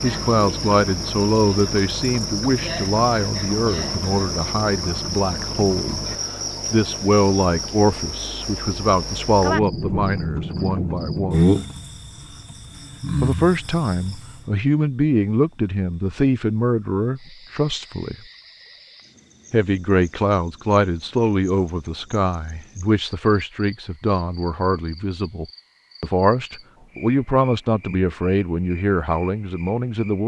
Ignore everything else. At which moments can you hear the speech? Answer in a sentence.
You can hear the speech from 0.0 to 6.0 s, from 6.7 to 11.6 s, from 13.2 to 18.1 s and from 19.5 to 30.2 s.